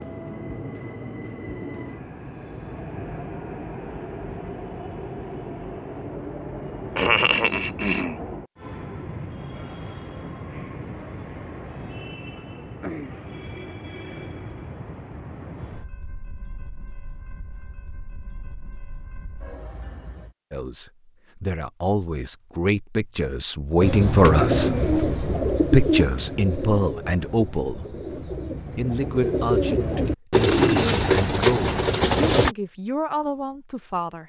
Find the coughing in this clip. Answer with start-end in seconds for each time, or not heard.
7.0-8.2.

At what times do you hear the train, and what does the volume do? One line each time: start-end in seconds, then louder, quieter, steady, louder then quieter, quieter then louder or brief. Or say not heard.
0.0-20.4 quieter.